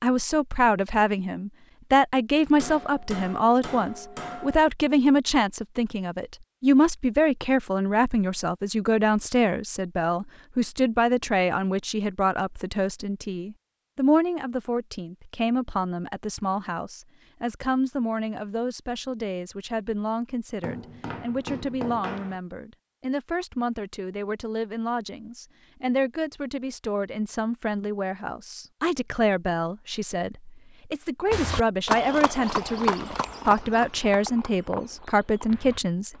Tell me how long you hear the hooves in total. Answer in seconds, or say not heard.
5 s.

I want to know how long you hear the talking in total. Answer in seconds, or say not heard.
36 s.